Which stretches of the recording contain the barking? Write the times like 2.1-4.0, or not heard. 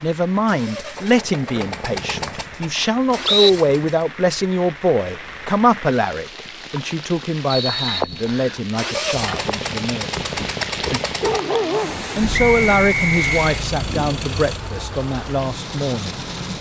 10.2-11.9.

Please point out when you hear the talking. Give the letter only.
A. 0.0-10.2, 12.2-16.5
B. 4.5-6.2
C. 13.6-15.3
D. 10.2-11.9
A.